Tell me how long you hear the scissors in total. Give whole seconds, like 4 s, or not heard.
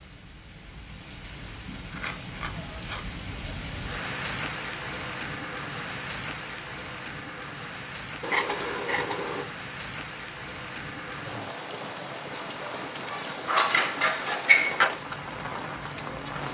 4 s.